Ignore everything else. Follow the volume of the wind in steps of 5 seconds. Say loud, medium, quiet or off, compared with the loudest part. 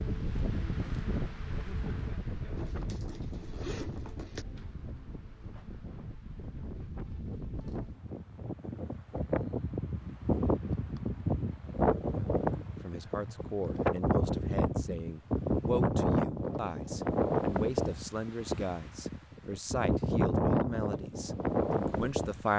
medium, medium, loud, loud, loud.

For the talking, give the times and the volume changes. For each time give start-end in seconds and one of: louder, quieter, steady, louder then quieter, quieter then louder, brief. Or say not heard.
12.8-22.5 steady.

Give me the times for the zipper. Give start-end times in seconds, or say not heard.
2.5-4.5.